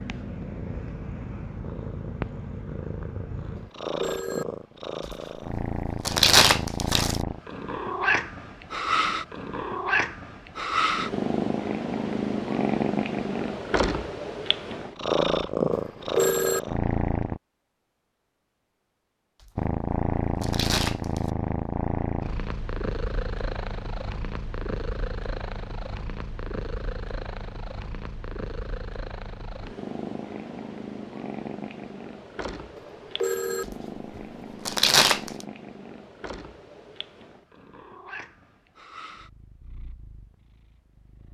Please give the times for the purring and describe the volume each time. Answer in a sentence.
The purring can be heard from 0.0 to 17.4 s, getting louder; and from 19.6 to 41.3 s, getting quieter.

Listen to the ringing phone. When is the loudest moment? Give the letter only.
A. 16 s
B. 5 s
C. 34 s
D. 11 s
A.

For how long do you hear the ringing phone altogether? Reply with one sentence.
The ringing phone can be heard for 3 seconds in total.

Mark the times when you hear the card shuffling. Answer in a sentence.
You can hear the card shuffling from 5.0 to 7.2 s, from 19.4 to 21.3 s and from 33.6 to 35.5 s.